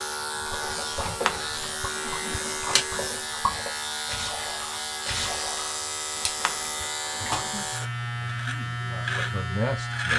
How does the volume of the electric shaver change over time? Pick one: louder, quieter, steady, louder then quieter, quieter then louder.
steady.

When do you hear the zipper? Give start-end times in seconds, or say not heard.
1.1-2.9, 6.2-7.5.